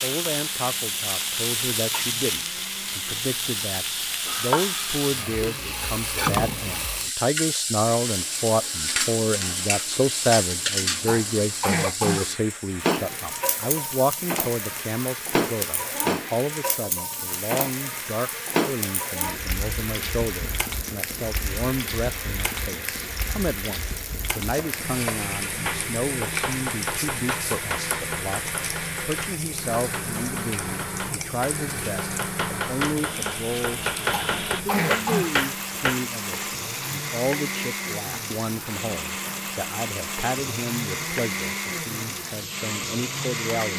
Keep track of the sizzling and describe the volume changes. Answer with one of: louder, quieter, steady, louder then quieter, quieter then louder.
quieter.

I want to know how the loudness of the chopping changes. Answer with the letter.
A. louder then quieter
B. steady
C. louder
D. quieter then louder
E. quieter
D.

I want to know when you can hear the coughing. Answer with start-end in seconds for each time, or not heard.
11.1-12.3, 34.1-35.3.